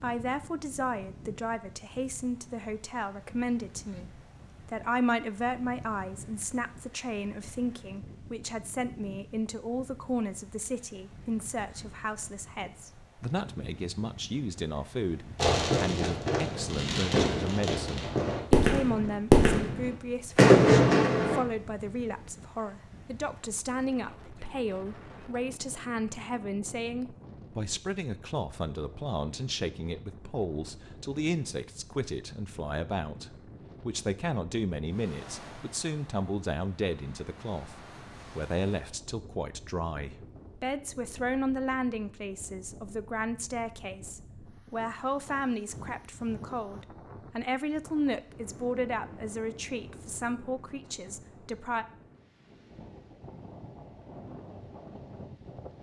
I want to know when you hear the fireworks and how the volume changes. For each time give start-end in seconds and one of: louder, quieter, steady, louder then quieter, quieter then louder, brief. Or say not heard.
15.3-21.4 louder.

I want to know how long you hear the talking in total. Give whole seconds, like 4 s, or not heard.
52 s.